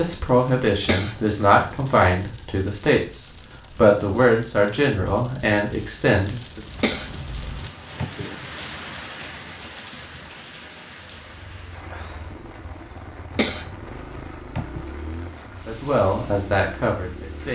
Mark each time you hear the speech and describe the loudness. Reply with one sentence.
The speech can be heard from 0.0 to 6.6 s, at a steady volume; and briefly from 15.7 to 17.4 s.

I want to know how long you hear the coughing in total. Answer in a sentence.
The coughing can be heard for 4 seconds in total.